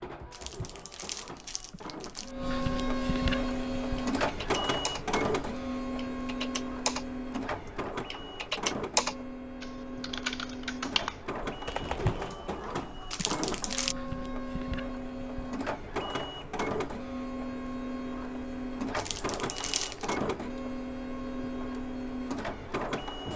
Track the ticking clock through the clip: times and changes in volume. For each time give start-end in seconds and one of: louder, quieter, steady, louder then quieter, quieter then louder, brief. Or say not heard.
not heard.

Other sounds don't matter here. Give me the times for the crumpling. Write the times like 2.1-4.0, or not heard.
0.3-2.4, 13.1-13.9, 18.9-20.1.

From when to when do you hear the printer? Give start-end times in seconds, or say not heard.
0.0-23.3.